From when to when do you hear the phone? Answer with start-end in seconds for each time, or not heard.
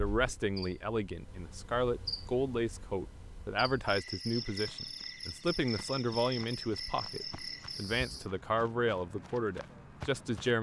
not heard.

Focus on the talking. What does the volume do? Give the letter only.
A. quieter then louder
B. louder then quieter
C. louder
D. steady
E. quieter
D.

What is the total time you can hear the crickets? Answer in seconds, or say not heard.
8 s.